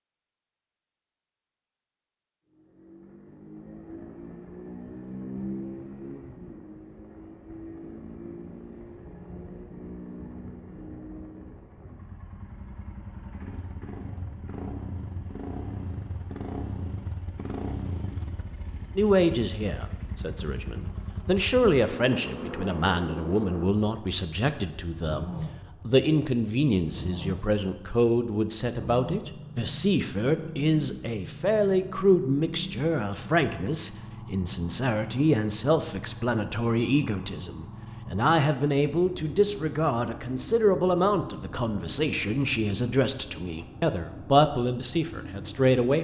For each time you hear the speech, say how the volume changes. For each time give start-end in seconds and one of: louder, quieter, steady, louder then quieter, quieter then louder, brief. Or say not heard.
18.9-45.9 steady.